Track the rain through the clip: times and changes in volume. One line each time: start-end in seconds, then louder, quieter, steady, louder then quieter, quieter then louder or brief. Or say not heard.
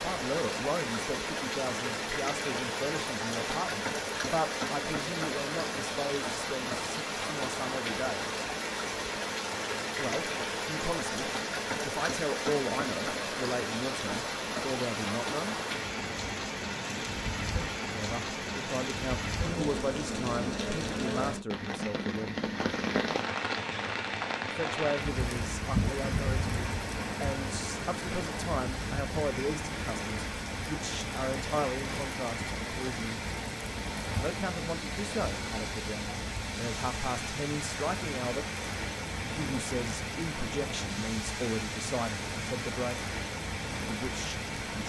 0.0-44.8 steady.